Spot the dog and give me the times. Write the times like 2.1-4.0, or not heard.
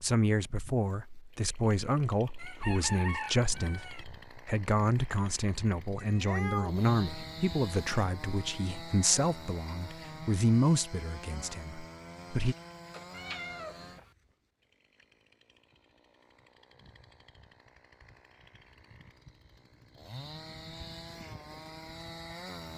not heard.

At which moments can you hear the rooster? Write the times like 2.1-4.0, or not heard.
2.4-4.0.